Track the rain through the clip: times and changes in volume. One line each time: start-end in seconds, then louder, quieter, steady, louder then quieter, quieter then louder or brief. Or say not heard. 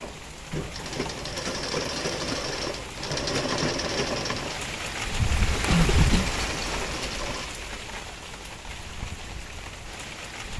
0.0-10.5 louder then quieter.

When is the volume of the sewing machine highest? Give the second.
4 s.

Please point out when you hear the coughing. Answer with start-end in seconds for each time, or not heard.
5.7-6.4.